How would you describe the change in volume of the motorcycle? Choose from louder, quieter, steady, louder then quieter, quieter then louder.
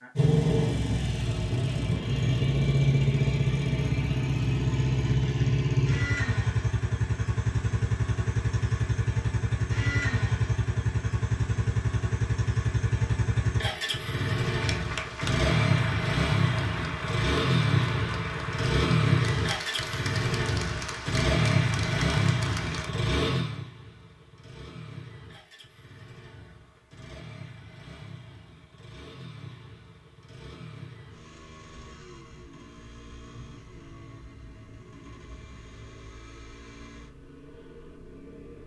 quieter.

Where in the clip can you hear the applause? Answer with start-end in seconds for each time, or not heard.
14.4-22.9.